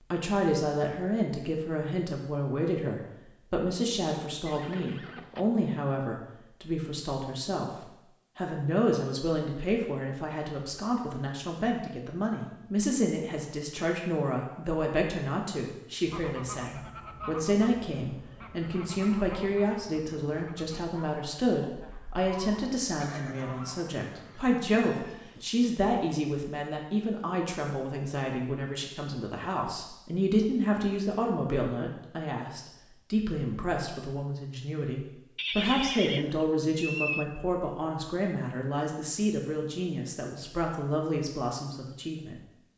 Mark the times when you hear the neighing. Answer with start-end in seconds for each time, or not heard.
4.5-5.5, 23.0-25.4, 35.4-37.2.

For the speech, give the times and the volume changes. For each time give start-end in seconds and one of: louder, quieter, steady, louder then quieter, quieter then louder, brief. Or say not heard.
0.1-42.4 steady.